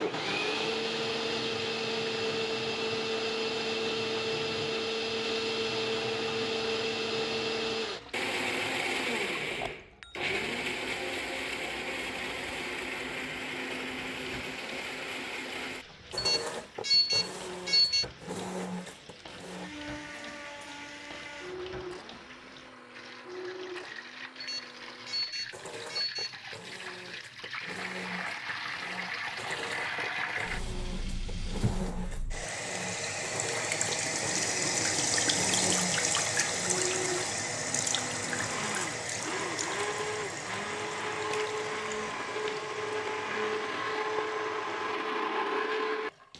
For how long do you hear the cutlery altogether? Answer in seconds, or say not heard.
not heard.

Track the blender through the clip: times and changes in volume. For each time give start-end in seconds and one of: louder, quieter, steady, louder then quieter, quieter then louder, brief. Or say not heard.
0.0-46.3 quieter then louder.